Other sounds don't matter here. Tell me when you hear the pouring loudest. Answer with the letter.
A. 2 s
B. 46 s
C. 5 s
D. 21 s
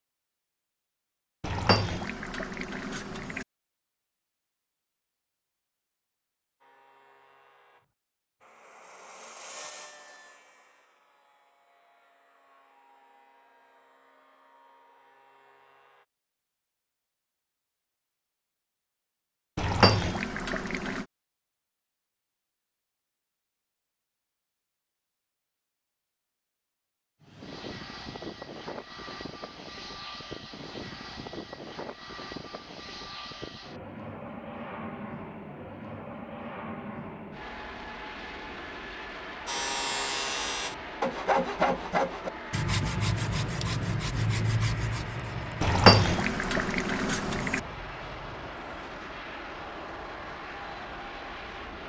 B.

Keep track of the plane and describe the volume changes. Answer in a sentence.
The volume of the plane stays about the same.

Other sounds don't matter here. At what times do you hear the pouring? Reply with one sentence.
The pouring can be heard from 1.4 to 3.5 s, from 19.6 to 21.1 s and from 45.6 to 47.6 s.